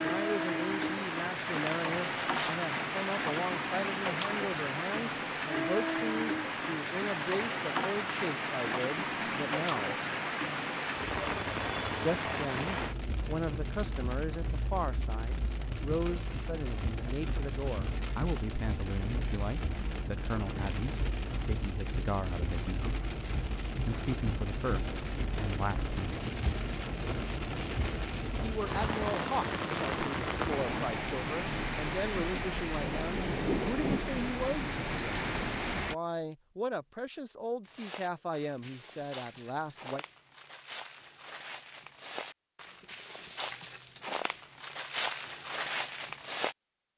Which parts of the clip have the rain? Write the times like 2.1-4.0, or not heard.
0.0-36.0.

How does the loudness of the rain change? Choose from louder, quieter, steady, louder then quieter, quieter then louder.
quieter then louder.